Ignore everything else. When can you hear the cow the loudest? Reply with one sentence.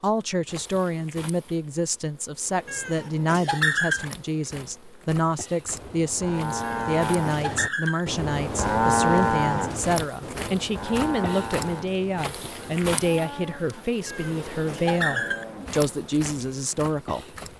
The loudest moment of the cow is at 9 seconds.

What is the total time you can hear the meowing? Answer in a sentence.
You can hear the meowing for 4 seconds altogether.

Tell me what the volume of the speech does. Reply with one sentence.
The volume of the speech stays about the same.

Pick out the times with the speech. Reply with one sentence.
You can hear the speech from 0.0 to 17.2 s.